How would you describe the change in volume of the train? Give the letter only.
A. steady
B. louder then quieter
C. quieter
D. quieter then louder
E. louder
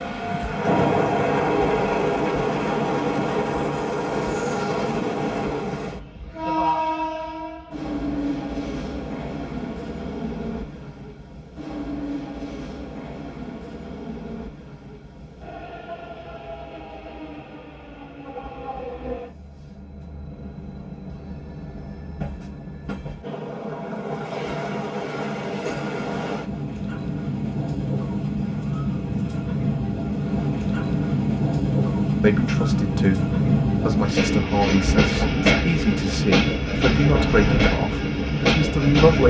D.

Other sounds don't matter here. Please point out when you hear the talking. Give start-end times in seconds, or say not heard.
32.2-39.2.